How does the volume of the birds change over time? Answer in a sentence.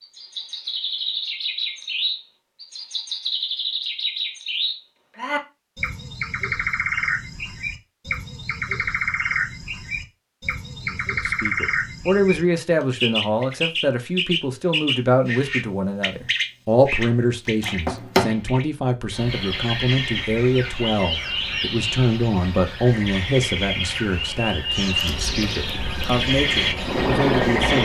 The volume of the birds stays about the same.